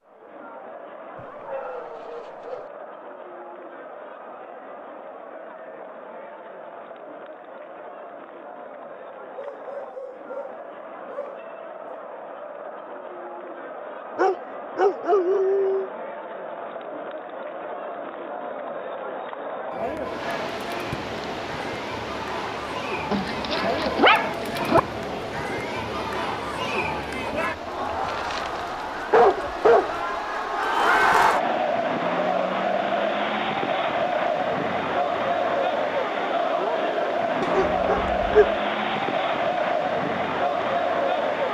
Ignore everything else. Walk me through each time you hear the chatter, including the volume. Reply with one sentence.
The chatter can be heard from 0.0 to 41.4 s, getting louder.